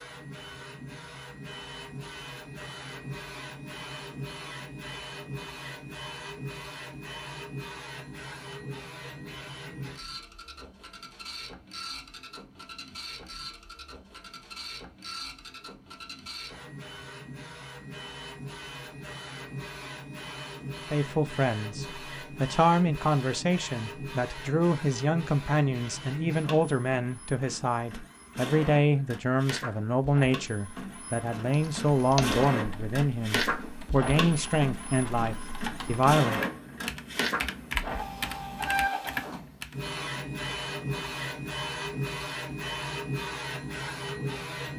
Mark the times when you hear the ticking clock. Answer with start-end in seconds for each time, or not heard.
not heard.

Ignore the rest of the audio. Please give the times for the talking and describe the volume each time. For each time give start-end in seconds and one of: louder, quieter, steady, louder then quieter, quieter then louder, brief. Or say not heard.
20.9-36.4 steady.